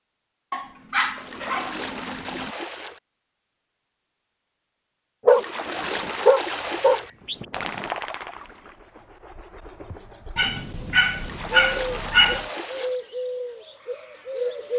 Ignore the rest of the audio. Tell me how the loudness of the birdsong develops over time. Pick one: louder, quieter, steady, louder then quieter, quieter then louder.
quieter then louder.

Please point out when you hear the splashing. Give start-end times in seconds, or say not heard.
1.1-3.0, 5.2-7.1, 11.1-12.9.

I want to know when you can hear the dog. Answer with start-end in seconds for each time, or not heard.
0.5-2.5, 5.2-7.9, 10.3-12.4.